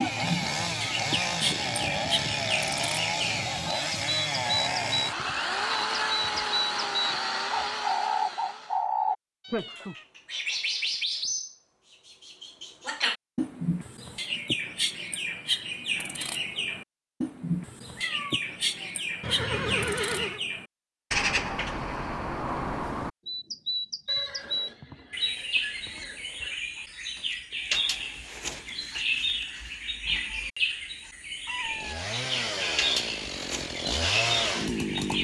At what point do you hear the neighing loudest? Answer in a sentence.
The loudest moment of the neighing is at 20 seconds.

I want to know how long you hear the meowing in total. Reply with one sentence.
The meowing can be heard for 3 seconds in total.